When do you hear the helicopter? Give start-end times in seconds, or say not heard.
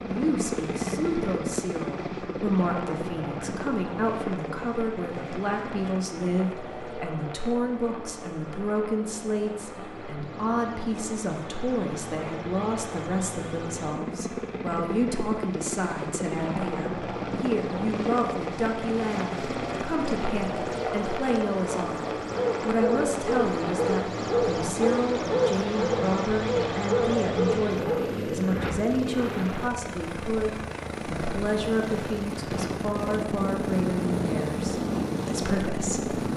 0.0-36.3.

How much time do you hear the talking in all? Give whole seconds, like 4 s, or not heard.
36 s.